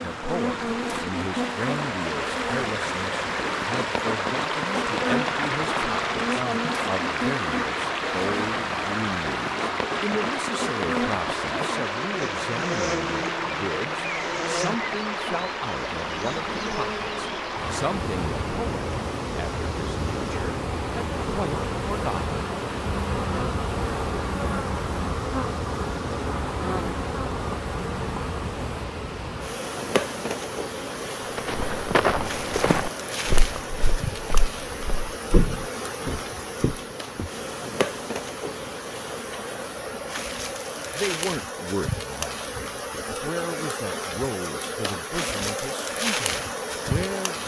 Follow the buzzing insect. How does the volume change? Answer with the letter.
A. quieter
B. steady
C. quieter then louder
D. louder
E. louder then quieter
B.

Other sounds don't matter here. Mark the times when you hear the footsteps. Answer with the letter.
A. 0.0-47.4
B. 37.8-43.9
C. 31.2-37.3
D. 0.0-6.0
C.